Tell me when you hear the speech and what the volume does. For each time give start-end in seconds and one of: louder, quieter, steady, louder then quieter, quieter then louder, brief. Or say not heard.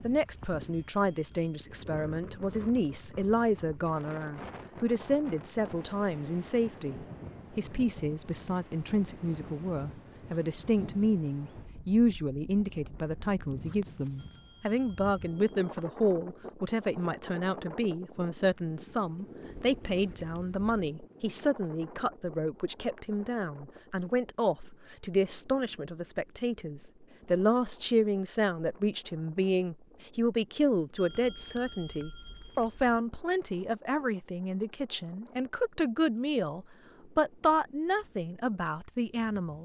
0.0-39.5 steady.